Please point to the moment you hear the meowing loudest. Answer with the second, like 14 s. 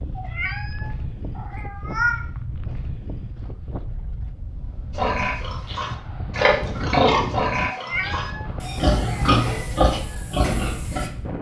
2 s.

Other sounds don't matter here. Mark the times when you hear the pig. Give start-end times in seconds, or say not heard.
5.0-11.1.